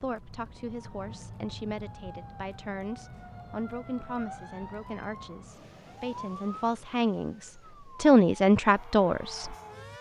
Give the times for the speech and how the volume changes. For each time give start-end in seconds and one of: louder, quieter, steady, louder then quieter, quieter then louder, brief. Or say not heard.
0.0-9.6 louder.